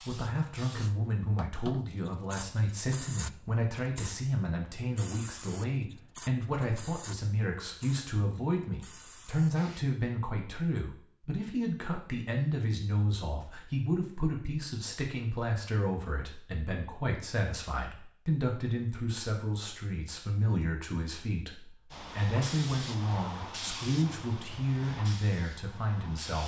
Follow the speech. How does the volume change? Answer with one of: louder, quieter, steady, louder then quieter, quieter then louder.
steady.